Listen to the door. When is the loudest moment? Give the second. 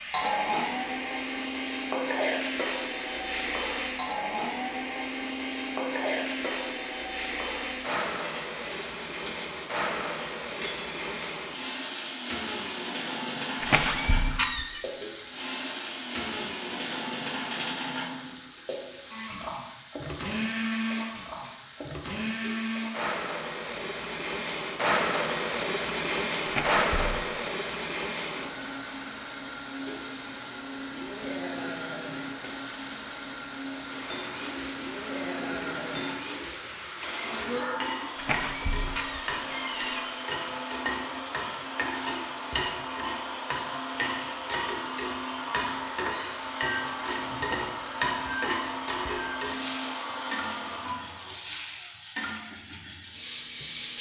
14 s.